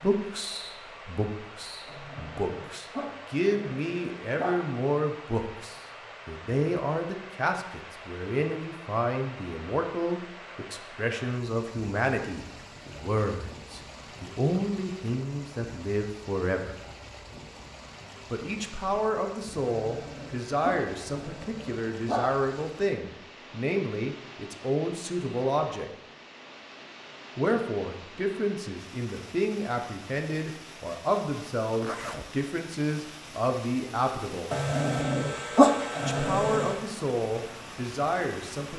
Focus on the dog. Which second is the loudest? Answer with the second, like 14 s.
36 s.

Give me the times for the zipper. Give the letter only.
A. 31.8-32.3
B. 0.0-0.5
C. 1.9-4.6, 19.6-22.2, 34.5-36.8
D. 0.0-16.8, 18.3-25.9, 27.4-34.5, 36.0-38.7
A.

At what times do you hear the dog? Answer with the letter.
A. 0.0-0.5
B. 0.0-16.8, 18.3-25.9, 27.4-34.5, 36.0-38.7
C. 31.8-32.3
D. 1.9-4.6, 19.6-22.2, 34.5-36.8
D.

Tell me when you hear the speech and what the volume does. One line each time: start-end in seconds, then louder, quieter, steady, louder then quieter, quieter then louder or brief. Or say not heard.
0.0-16.8 steady
18.3-25.9 steady
27.4-34.5 steady
36.0-38.7 brief.